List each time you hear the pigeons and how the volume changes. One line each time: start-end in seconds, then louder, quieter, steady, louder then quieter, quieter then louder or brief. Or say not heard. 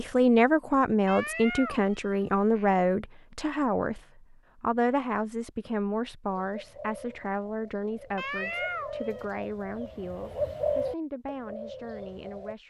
6.2-12.6 louder then quieter.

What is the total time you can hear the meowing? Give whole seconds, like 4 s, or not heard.
3 s.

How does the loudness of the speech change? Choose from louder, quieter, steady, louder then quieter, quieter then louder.
quieter.